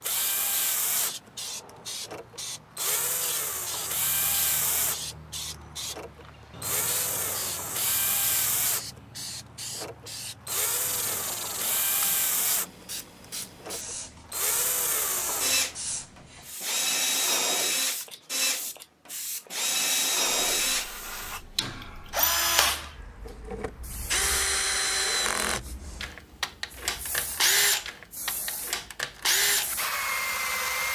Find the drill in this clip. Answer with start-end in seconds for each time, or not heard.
0.0-1.1, 2.0-5.0, 5.9-8.8, 9.8-12.7, 13.6-30.9.